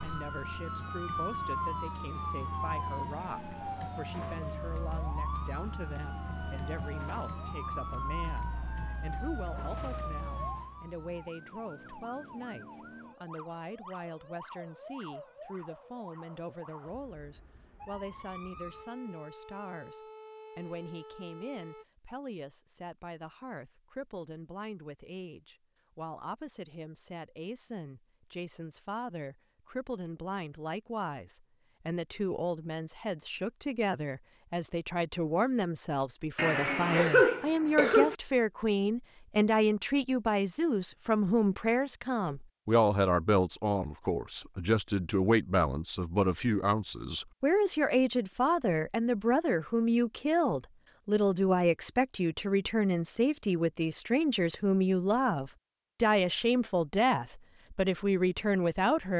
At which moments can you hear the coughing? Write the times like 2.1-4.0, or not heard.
36.4-38.1.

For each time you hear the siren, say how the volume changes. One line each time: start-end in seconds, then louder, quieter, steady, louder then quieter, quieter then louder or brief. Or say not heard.
0.0-21.9 quieter.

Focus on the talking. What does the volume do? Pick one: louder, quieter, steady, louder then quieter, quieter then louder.
louder.